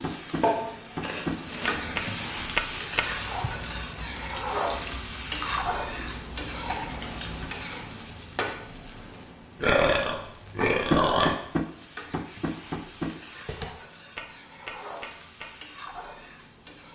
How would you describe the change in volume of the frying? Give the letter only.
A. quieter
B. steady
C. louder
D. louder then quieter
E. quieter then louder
A.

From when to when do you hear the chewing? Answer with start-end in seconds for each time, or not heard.
1.0-7.5.